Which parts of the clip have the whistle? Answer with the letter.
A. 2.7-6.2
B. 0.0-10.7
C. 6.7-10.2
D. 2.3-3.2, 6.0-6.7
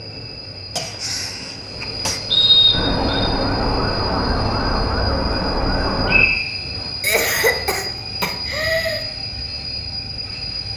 D.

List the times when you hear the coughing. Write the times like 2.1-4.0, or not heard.
0.7-2.2, 7.0-9.0.